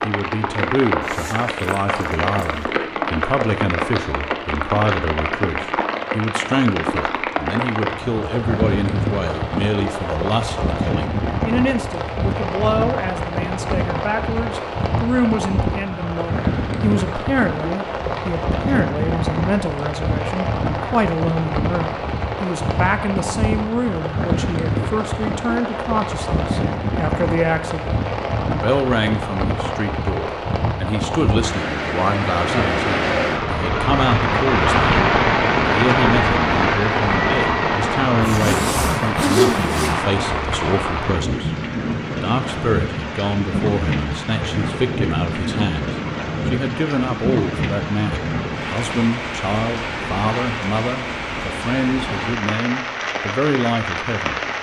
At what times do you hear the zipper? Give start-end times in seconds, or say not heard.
1.0-2.6, 38.2-40.0.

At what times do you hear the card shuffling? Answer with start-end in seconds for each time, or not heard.
not heard.